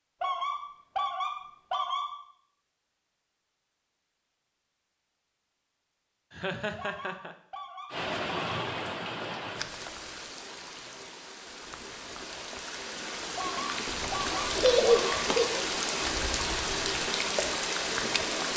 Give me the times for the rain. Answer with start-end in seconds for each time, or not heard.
7.9-18.5.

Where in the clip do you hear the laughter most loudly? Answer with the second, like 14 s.
15 s.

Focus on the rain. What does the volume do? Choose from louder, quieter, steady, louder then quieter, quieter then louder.
quieter then louder.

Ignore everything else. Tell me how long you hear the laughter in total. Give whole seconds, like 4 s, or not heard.
2 s.